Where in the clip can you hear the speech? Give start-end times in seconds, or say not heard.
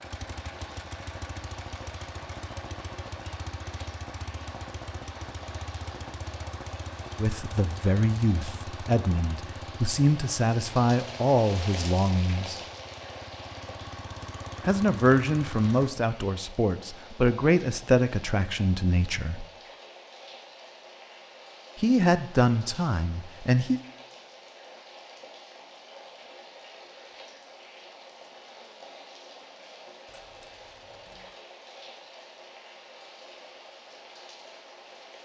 7.2-12.6, 14.7-19.4, 21.8-23.8.